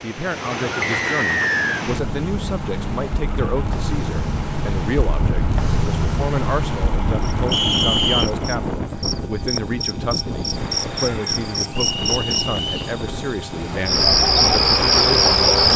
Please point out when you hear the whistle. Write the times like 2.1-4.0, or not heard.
0.8-1.9, 7.5-8.2, 11.8-12.9.